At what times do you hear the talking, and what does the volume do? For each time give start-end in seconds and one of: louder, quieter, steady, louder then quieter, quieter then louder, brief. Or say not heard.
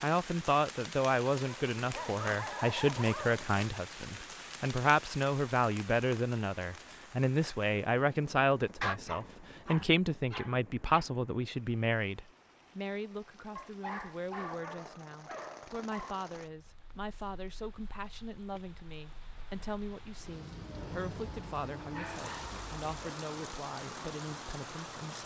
0.0-25.2 quieter.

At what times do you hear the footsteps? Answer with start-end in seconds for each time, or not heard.
not heard.